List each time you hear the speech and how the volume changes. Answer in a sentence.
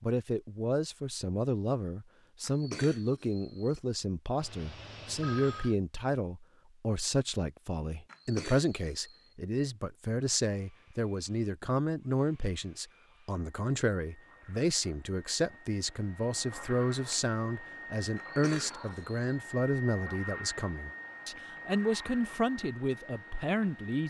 You can hear the speech from 0.0 to 24.0 s, at a steady volume.